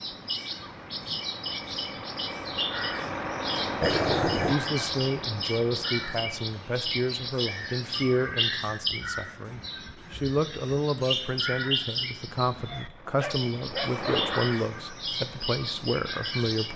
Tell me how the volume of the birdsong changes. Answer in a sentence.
The loudness of the birdsong stays about the same.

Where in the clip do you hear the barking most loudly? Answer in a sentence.
The volume of the barking peaks at 4 seconds.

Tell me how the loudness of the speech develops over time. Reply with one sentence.
The volume of the speech stays about the same.